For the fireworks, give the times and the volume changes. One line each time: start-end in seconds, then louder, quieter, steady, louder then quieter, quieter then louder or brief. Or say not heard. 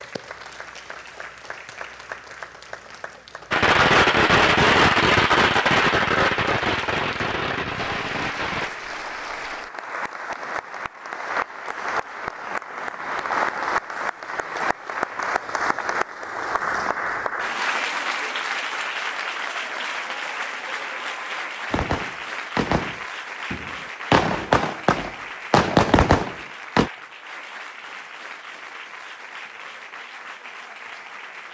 3.5-8.7 quieter
21.7-26.9 quieter then louder.